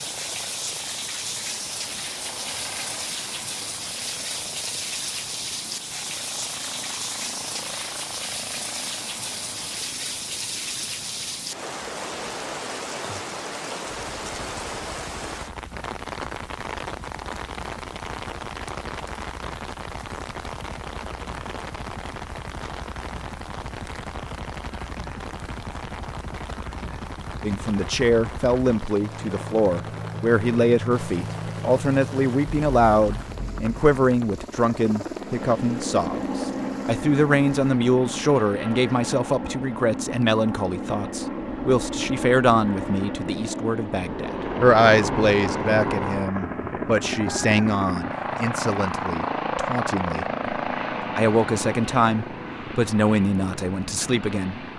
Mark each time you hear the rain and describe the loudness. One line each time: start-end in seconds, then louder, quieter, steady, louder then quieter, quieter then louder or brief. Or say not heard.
0.0-37.5 quieter.